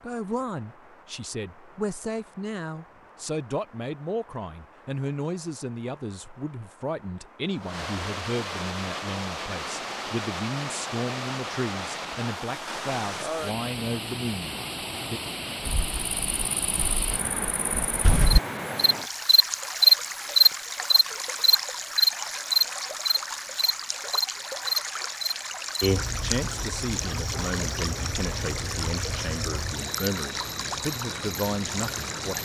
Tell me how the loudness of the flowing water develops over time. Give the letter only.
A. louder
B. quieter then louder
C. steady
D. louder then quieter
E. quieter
A.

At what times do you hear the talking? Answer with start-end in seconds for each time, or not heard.
0.0-15.2, 26.1-32.4.